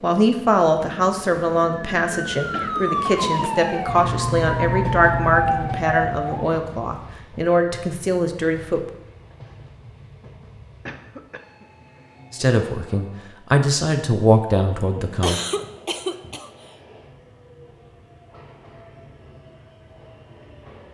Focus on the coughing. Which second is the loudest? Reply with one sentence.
The volume of the coughing peaks at 15 seconds.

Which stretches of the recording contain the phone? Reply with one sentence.
You can't hear the phone here.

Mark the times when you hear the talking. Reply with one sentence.
The talking can be heard from 0.0 to 8.8 s and from 12.3 to 15.4 s.